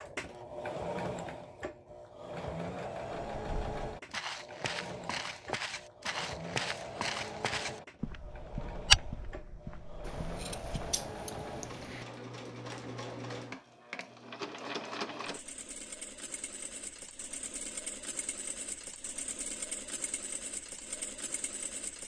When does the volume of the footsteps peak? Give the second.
9 s.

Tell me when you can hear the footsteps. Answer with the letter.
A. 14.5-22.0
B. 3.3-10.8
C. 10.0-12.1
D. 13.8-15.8
B.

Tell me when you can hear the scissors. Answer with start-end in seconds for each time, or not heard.
10.0-12.1.